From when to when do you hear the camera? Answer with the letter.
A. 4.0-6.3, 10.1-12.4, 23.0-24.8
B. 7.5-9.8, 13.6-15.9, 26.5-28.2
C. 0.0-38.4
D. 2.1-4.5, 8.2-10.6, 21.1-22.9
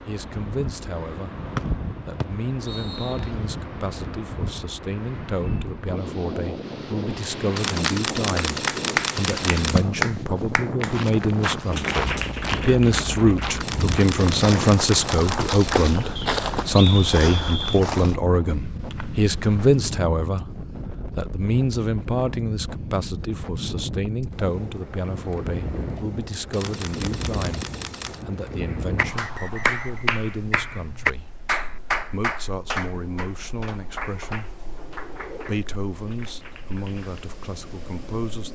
B.